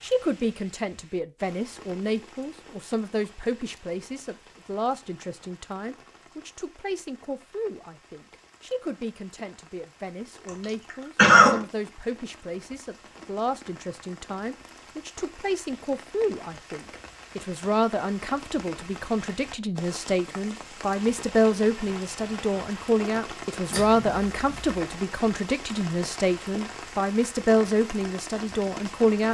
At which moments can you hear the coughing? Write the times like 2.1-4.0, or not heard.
11.2-11.6, 23.7-24.8.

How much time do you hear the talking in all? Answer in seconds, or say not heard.
29 s.